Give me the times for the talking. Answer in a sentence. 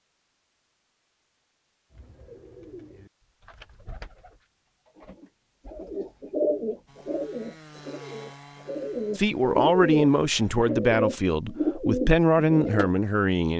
The talking can be heard from 9.2 to 13.5 s.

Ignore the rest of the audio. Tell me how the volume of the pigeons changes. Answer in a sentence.
The volume of the pigeons goes up.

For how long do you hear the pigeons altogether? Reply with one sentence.
You can hear the pigeons for 11 seconds altogether.